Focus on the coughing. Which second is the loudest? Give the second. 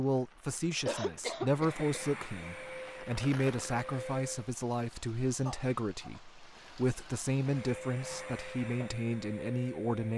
1 s.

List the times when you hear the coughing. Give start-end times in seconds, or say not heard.
0.8-2.0, 5.5-6.2.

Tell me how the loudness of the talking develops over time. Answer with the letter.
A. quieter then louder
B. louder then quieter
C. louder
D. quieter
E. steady
E.